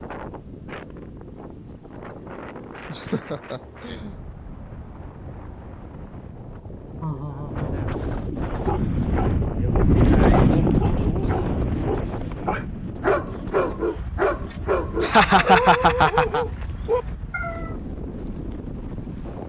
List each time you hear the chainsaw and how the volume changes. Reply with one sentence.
You can't hear the chainsaw here.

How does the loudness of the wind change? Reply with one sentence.
The volume of the wind goes up, then down.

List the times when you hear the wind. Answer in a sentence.
You can hear the wind from 0.0 to 19.4 s.